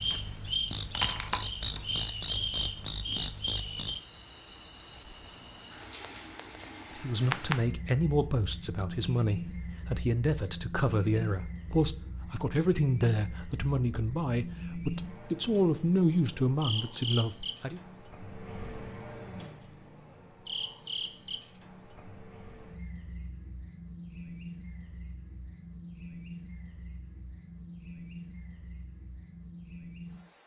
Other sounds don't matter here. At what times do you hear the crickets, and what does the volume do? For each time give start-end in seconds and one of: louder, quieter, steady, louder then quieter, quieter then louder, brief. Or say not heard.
0.0-30.4 quieter.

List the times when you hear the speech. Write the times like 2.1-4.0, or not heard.
7.0-17.8.